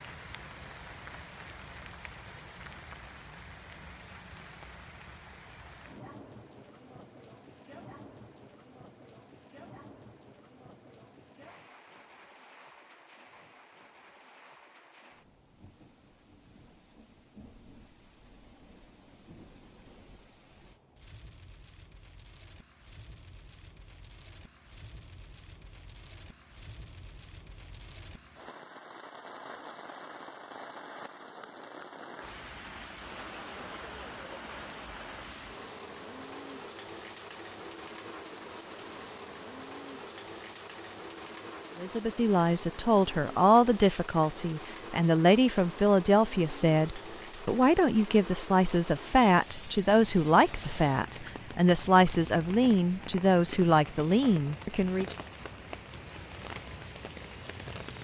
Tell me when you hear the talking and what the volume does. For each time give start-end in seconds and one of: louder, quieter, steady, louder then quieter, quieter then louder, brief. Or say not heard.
41.8-55.1 steady.